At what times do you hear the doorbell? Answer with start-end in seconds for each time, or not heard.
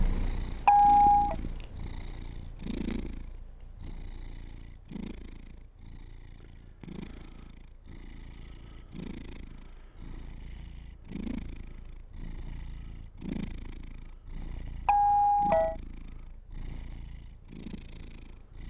0.7-1.4, 14.8-15.8.